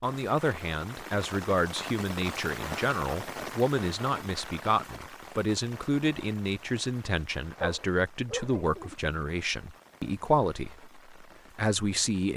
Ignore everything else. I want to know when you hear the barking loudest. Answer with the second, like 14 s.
8 s.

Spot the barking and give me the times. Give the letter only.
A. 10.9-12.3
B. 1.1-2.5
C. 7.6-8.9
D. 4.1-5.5
C.